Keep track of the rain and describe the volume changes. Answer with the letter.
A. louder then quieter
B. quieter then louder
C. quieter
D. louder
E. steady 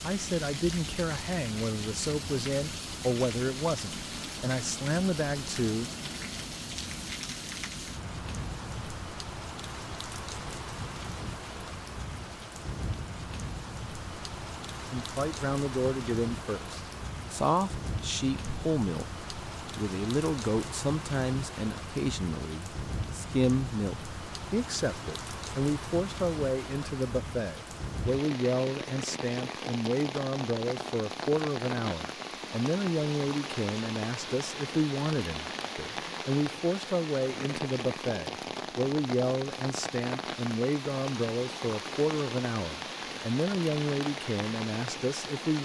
E.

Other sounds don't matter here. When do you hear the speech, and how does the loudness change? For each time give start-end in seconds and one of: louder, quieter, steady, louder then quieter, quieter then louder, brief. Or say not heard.
0.0-5.8 steady
14.9-45.6 steady.